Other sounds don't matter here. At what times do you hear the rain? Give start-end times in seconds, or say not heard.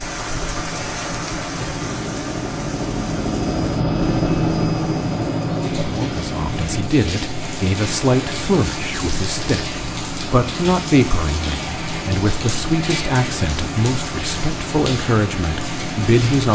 0.0-16.5.